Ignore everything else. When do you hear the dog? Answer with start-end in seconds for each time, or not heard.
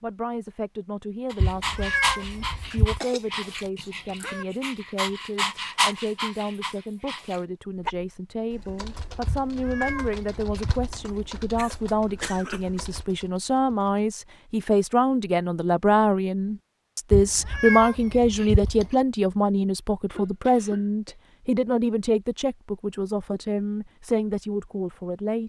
1.3-8.0.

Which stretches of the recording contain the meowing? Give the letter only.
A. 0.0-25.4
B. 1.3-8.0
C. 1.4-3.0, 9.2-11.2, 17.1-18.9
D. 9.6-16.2
C.